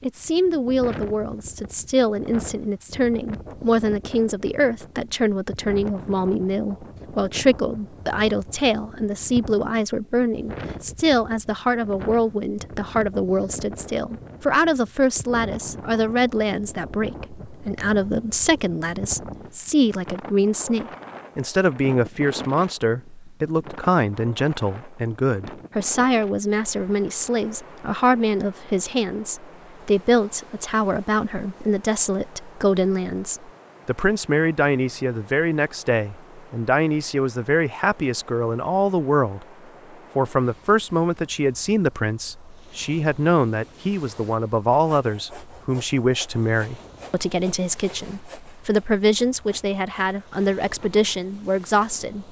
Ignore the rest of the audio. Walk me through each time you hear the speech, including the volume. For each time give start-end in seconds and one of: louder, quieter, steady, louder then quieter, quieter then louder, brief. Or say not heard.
0.0-39.5 steady
40.1-52.2 steady.